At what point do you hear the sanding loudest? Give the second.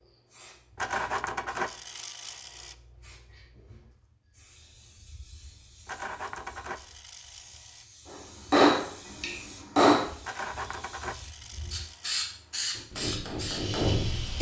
1 s.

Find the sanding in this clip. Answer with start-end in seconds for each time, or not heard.
0.8-2.8, 5.8-7.8, 10.2-12.2.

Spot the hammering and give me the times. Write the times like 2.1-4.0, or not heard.
8.1-10.1, 12.7-14.3.